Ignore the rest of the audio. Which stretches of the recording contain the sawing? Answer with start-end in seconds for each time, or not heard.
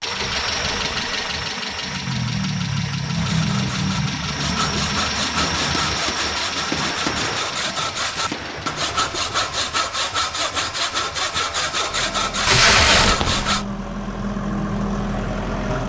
3.1-13.7.